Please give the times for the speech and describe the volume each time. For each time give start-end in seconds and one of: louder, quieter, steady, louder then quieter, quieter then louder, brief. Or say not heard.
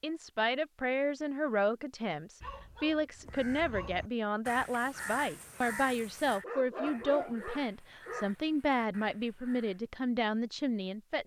0.0-11.2 steady.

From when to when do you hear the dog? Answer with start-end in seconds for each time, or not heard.
2.4-4.0, 6.4-8.3.